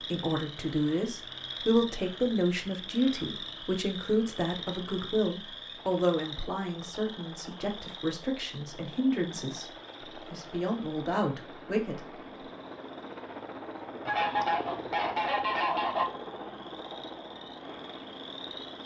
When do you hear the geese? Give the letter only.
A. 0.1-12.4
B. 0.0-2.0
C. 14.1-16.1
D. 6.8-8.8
C.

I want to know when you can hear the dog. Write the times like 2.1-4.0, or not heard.
not heard.